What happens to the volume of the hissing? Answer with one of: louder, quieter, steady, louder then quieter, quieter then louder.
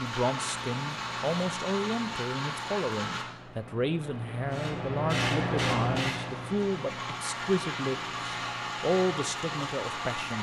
louder then quieter.